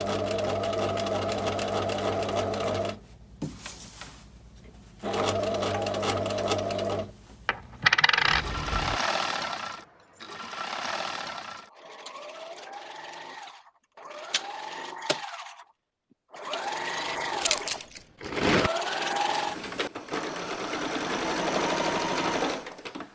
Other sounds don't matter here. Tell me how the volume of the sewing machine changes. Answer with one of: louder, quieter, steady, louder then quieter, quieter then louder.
quieter then louder.